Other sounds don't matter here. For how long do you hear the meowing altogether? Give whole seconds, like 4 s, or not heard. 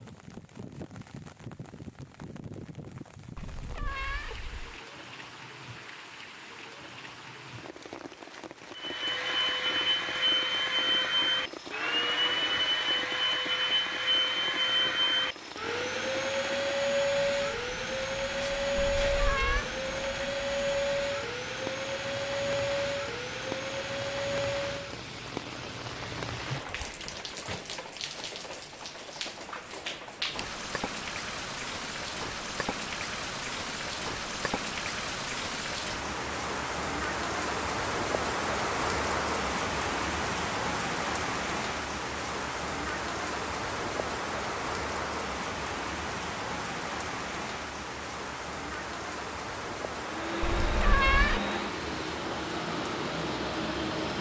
3 s.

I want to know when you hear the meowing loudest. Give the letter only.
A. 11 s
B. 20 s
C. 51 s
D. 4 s
C.